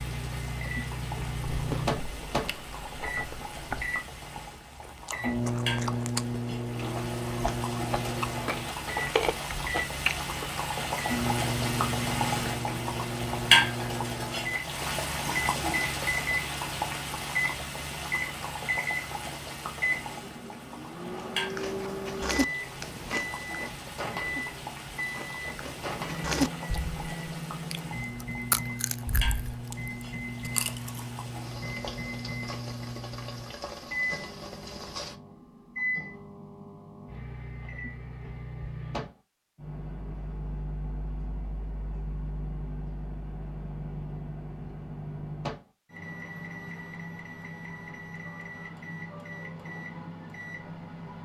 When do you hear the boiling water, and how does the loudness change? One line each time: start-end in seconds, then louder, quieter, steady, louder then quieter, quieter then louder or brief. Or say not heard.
0.0-35.1 louder then quieter.